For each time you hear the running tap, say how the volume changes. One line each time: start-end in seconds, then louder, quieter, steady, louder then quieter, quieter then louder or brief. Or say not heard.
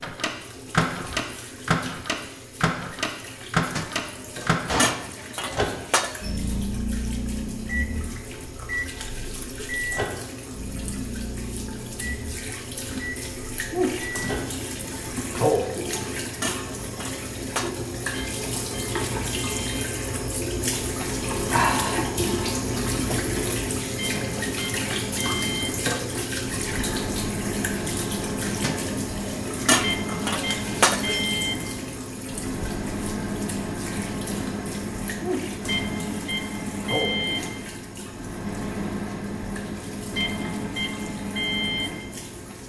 0.0-42.6 louder then quieter.